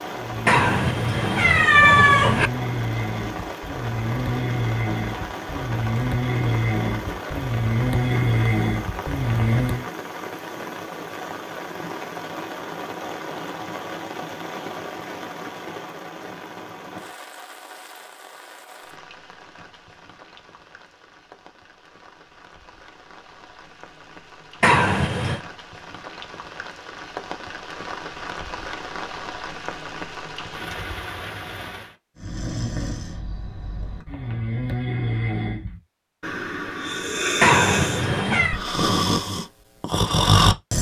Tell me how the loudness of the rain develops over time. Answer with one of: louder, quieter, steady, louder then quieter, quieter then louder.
quieter then louder.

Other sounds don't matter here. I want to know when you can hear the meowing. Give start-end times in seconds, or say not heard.
0.5-2.5, 24.6-25.4, 37.4-38.6.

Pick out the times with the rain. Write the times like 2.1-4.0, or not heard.
0.0-31.9.